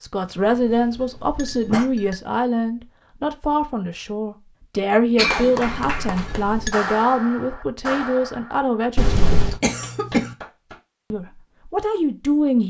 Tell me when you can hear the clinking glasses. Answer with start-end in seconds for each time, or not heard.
0.4-2.2, 5.7-6.8, 8.9-9.6.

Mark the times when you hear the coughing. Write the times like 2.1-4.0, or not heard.
0.7-1.9, 5.2-5.9, 9.6-10.3.